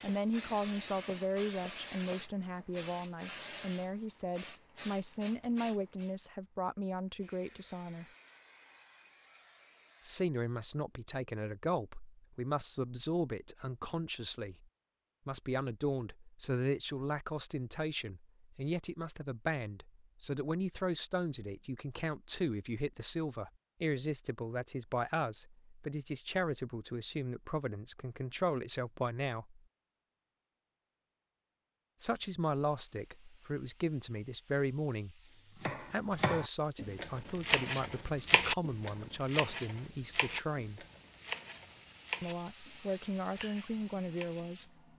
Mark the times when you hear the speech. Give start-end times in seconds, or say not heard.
0.0-8.1, 10.0-14.7, 15.2-29.6, 32.0-40.9, 42.2-44.6.